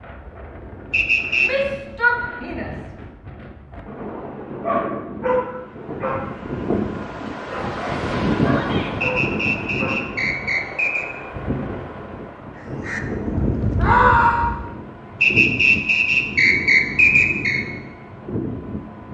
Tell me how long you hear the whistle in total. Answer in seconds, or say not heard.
5 s.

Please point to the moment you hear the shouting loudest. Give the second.
14 s.